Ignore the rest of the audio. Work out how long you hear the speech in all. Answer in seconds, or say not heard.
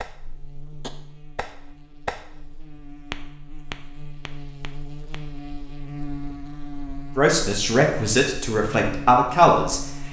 3 s.